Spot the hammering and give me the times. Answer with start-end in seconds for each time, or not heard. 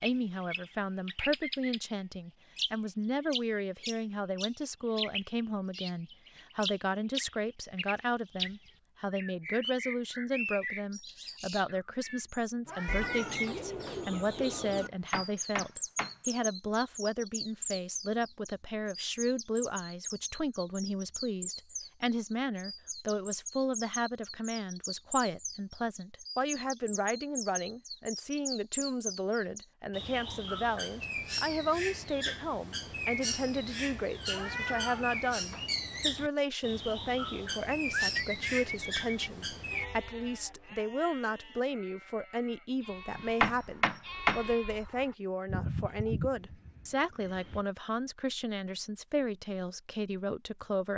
14.8-16.1, 43.1-44.4.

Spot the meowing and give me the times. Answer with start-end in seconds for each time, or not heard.
12.7-14.1, 34.3-35.7.